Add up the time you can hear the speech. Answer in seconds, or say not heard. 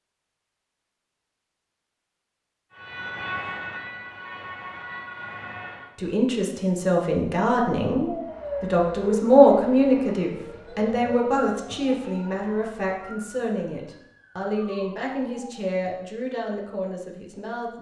12 s.